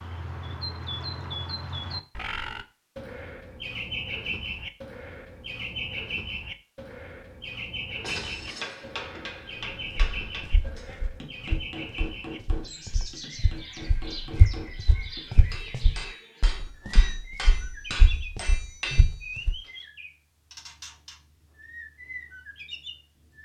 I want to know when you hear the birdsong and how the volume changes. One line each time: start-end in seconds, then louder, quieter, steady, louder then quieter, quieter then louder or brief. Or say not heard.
0.0-23.4 quieter.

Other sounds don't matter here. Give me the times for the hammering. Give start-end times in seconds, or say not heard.
8.0-19.7.